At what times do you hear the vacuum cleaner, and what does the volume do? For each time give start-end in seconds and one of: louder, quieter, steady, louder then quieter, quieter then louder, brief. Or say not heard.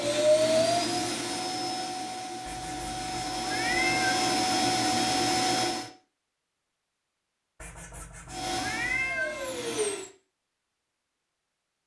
0.0-5.9 quieter then louder
8.3-10.1 brief.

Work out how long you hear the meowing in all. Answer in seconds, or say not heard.
4 s.